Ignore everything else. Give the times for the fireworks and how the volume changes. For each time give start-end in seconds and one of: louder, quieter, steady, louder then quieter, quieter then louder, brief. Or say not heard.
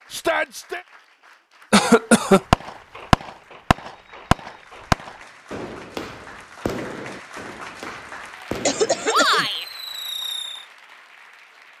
2.5-10.7 quieter.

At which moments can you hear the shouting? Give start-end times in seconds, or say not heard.
0.1-0.8, 9.1-9.7.